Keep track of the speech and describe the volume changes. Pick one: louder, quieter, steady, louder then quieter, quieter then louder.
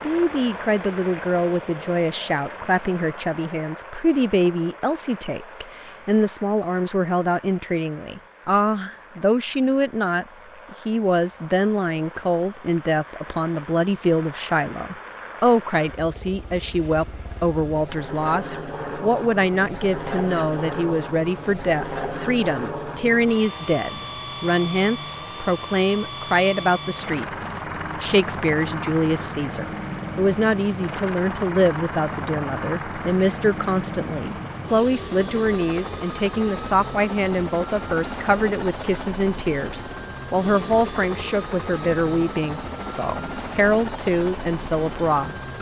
steady.